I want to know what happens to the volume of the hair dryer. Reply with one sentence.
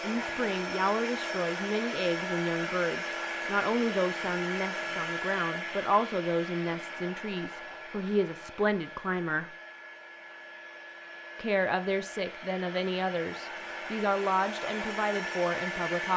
The loudness of the hair dryer goes down, then up.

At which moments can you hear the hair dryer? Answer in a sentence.
The hair dryer can be heard from 0.0 to 16.1 s.